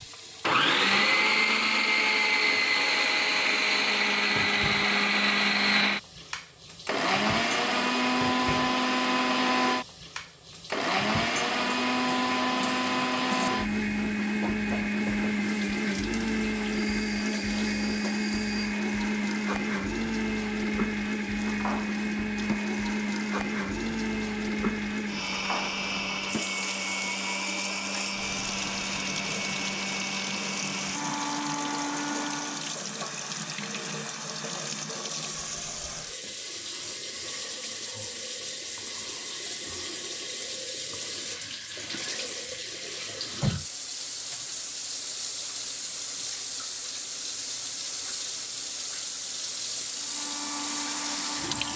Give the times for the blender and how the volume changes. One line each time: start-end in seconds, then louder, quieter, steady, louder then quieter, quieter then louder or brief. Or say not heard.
0.0-32.8 quieter
50.0-51.7 brief.